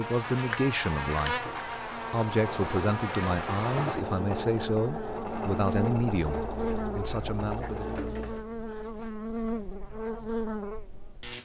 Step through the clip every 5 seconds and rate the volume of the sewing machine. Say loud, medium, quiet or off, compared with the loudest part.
loud, loud, off.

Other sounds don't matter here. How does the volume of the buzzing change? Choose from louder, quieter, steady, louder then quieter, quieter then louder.
steady.